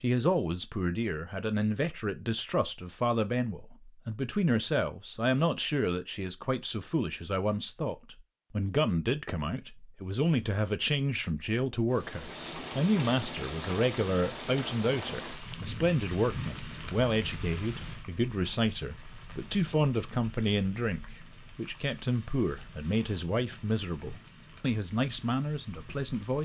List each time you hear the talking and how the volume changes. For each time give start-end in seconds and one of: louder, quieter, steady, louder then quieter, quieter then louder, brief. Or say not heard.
0.0-26.4 steady.